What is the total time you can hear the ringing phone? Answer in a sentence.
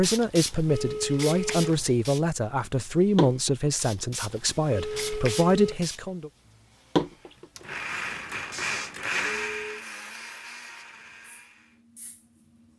The ringing phone can be heard for 3 seconds in total.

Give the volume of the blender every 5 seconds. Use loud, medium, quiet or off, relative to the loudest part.
off, loud, quiet.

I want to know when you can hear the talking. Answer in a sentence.
You can hear the talking from 0.0 to 6.3 s.